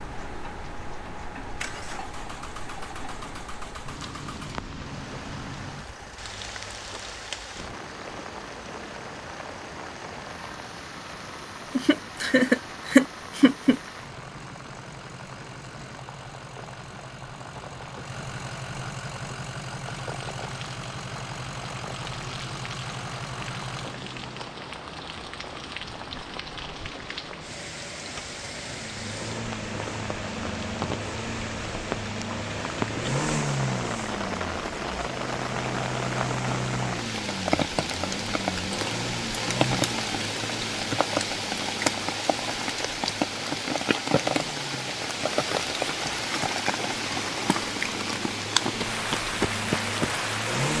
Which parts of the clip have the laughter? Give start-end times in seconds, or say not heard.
11.8-13.8.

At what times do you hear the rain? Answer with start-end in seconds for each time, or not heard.
0.0-50.7.